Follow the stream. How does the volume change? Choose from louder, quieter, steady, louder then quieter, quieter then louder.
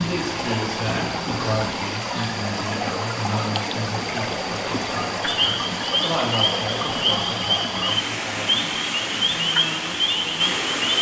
steady.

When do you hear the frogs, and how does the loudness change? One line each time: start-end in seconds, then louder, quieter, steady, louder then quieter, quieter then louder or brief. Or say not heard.
5.2-10.9 steady.